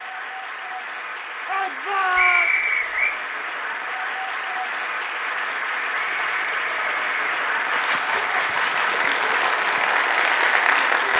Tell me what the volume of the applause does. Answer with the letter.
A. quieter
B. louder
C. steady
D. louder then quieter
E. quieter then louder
B.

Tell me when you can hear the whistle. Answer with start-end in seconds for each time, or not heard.
2.1-3.1, 5.9-7.3.